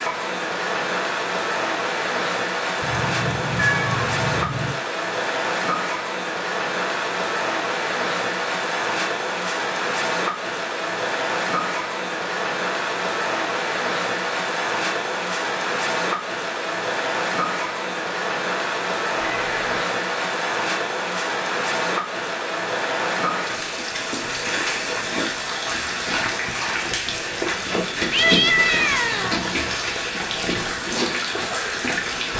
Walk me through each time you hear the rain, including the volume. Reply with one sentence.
The rain can be heard from 0.0 to 32.3 s, at a steady volume.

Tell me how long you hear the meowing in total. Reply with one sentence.
You can hear the meowing for 4 seconds altogether.